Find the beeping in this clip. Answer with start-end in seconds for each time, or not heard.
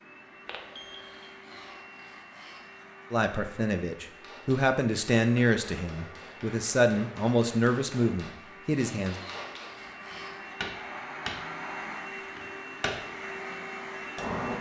0.5-1.3.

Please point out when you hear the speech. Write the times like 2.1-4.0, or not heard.
3.1-9.2.